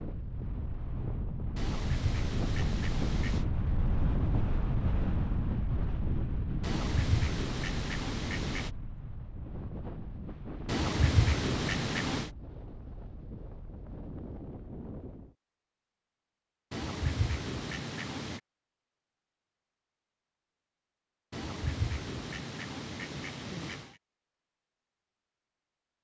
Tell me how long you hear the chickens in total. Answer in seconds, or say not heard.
10 s.